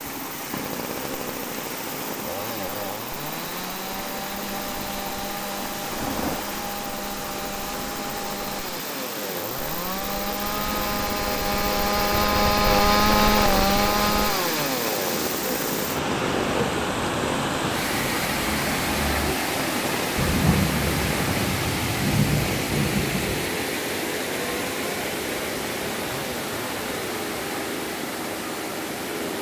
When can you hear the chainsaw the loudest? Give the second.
13 s.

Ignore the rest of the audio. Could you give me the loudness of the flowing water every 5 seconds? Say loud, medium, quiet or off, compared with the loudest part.
medium, medium, medium, loud, loud, medium.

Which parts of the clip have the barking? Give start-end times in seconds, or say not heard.
not heard.